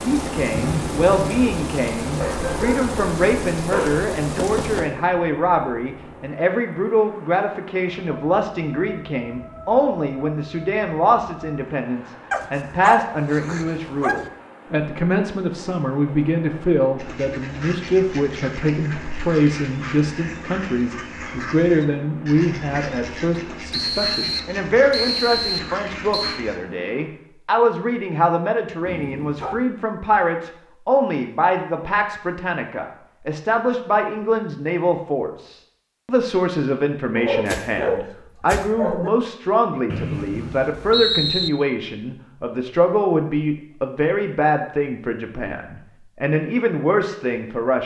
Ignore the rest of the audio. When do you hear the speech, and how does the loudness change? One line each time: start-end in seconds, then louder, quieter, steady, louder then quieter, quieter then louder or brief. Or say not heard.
0.1-47.8 steady.